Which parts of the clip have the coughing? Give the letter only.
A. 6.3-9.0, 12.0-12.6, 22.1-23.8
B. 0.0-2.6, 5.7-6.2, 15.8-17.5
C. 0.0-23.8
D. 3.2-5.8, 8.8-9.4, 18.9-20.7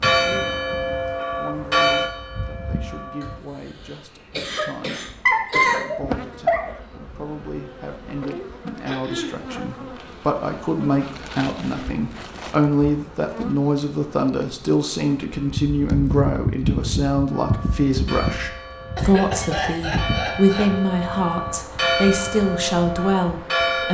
D.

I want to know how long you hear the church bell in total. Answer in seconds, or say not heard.
10 s.